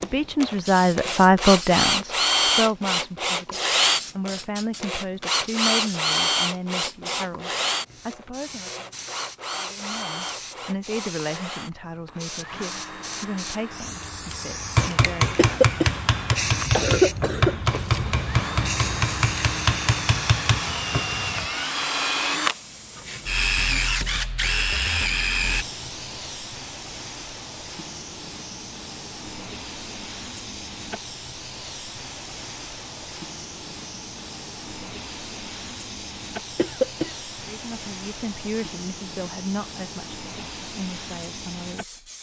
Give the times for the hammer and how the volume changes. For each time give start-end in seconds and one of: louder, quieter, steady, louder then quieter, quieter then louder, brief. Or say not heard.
14.8-21.0 steady.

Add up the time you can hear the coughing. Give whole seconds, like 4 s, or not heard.
3 s.